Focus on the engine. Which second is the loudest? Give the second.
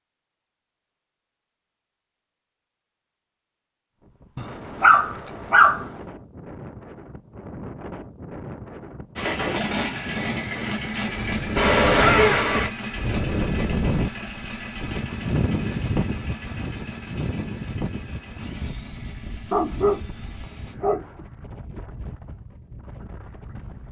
10 s.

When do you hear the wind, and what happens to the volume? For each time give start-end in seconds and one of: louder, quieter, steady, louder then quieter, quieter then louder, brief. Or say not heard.
4.0-23.8 louder then quieter.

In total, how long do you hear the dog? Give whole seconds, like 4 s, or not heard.
3 s.